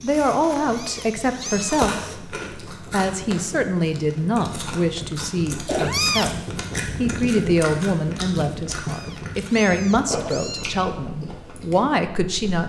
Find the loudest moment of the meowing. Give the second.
6 s.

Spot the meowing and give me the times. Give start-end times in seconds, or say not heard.
0.7-2.0, 5.7-6.4, 8.8-10.8.